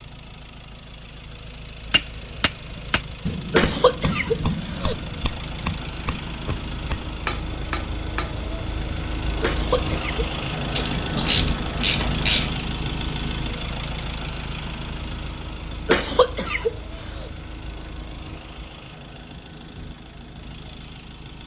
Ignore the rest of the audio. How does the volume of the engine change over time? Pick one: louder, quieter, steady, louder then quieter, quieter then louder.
louder then quieter.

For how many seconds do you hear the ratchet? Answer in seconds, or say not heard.
2 s.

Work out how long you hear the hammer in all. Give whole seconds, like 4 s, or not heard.
7 s.